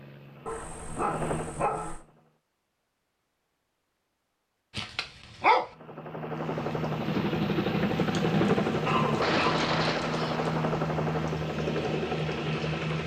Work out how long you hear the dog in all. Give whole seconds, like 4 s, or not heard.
4 s.